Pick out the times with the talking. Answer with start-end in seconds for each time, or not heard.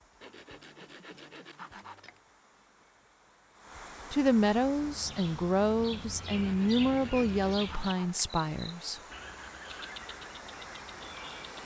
4.1-9.0.